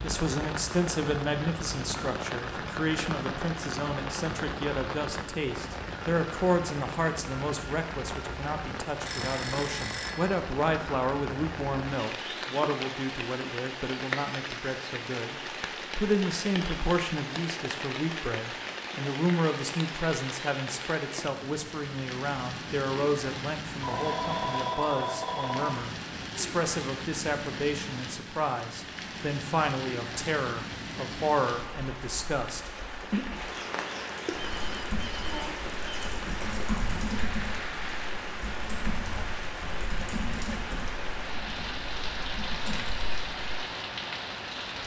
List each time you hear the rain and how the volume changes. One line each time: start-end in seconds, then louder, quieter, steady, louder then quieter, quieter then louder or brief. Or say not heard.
0.0-44.8 steady.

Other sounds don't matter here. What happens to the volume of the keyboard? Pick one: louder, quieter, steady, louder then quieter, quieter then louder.
louder then quieter.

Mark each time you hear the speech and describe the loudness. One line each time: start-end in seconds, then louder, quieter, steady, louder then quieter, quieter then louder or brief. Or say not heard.
0.0-32.7 steady.